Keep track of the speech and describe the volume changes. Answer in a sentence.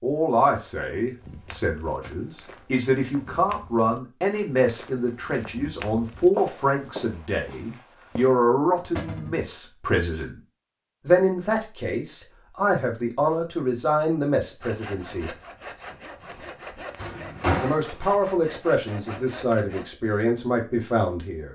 The loudness of the speech stays about the same.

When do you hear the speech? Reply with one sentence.
The speech can be heard from 0.0 to 10.3 s, from 11.1 to 15.3 s and from 17.6 to 21.5 s.